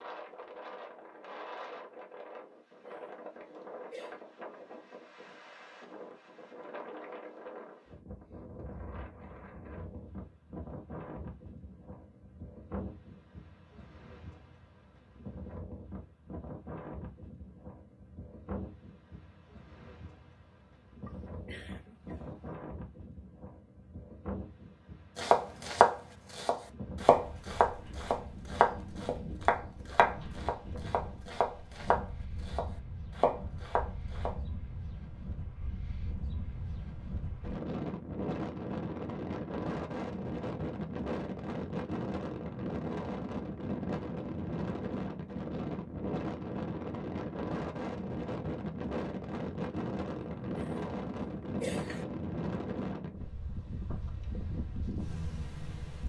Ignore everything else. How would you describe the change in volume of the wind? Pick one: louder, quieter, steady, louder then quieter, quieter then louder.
louder.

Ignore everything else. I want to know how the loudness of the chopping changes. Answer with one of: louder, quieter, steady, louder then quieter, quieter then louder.
quieter.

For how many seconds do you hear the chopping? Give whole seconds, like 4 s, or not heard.
9 s.